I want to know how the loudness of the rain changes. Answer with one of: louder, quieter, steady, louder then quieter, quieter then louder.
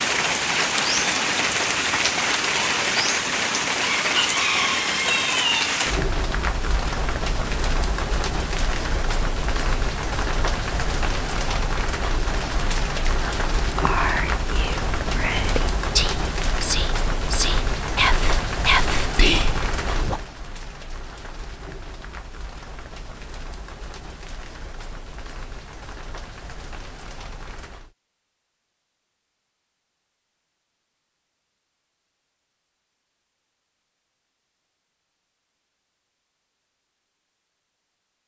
quieter.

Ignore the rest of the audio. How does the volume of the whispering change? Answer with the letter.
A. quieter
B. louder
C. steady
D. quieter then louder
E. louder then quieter
B.